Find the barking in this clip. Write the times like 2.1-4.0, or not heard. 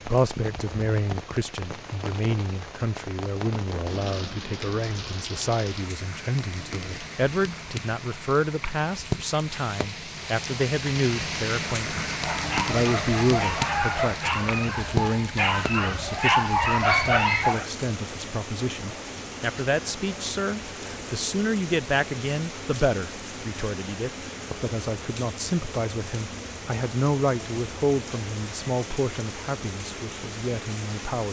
12.1-17.6.